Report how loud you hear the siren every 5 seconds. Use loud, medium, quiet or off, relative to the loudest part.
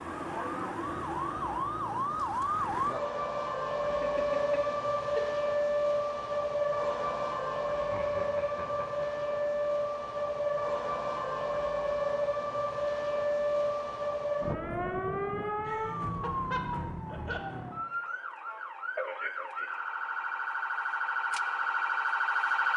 loud, loud, loud, medium, loud.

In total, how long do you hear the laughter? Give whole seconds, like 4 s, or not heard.
5 s.